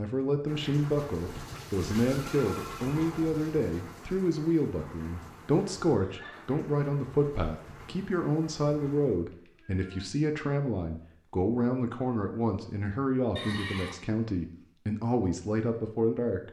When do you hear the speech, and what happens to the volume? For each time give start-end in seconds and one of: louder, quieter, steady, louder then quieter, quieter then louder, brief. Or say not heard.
0.0-16.4 steady.